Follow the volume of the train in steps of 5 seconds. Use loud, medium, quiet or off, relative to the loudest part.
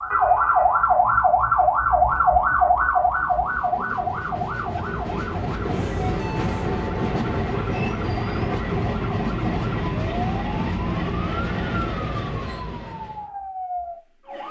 medium, loud, loud.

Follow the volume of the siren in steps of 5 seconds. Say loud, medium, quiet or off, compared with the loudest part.
loud, quiet, quiet.